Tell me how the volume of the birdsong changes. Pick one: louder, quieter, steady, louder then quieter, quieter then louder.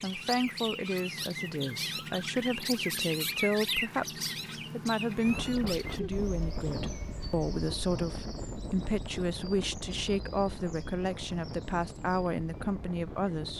quieter.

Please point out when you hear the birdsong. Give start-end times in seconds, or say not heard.
0.0-13.5.